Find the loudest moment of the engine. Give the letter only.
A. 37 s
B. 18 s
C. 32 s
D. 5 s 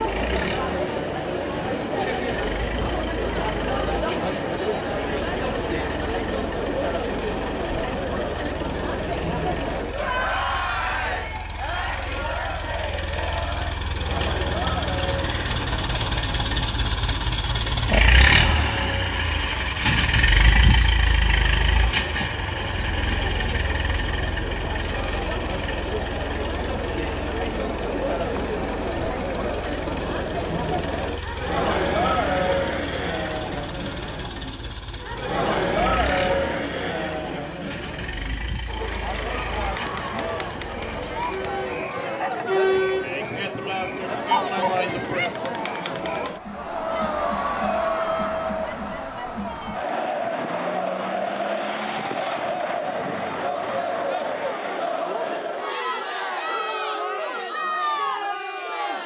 B.